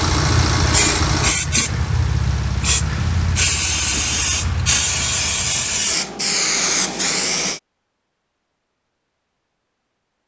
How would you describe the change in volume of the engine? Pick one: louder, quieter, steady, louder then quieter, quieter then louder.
quieter.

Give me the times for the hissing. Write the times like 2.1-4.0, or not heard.
0.0-7.6.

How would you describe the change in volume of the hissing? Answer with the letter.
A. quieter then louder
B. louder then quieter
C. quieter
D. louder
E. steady
E.